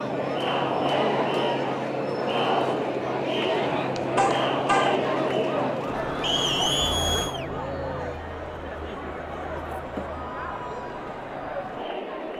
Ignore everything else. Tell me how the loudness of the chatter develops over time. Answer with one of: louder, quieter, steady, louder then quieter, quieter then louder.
quieter.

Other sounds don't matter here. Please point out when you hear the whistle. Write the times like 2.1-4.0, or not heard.
6.2-6.9.